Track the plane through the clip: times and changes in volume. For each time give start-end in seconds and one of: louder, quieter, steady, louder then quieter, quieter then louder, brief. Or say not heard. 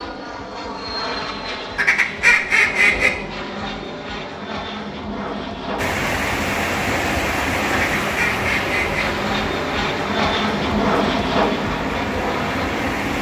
0.0-13.1 louder.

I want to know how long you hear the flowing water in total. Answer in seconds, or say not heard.
7 s.